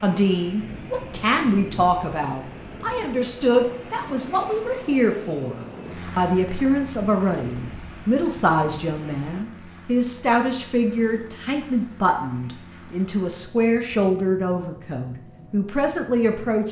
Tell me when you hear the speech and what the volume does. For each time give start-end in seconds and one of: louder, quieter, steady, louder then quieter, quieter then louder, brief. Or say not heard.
0.0-16.6 steady.